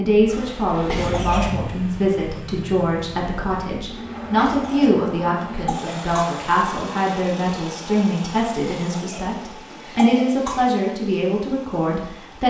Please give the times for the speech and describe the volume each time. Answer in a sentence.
You can hear the speech from 0.0 to 12.4 s, at a steady volume.